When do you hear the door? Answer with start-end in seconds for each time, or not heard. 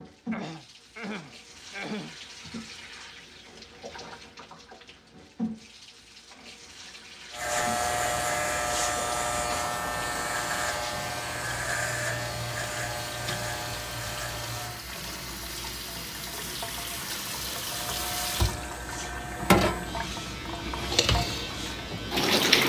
not heard.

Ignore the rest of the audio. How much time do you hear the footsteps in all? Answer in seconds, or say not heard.
not heard.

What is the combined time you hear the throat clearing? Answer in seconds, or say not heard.
2 s.